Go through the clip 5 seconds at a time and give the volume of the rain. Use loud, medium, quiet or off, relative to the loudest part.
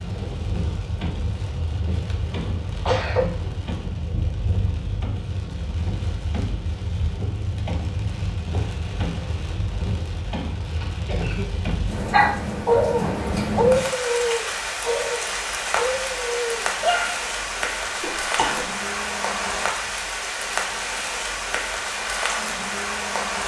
medium, medium, loud, loud, loud.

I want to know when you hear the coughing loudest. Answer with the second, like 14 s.
3 s.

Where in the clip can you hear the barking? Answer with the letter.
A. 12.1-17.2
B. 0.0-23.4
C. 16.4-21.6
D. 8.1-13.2
A.